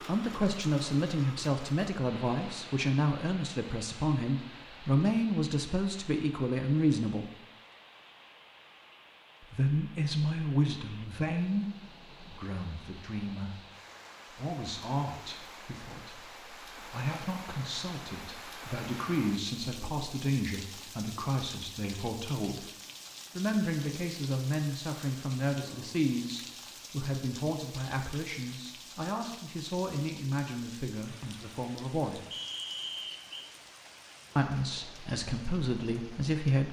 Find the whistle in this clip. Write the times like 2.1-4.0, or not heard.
32.3-33.5.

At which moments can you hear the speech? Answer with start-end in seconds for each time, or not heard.
0.1-7.3, 9.4-13.6, 14.3-22.7, 23.4-32.2, 34.4-36.6.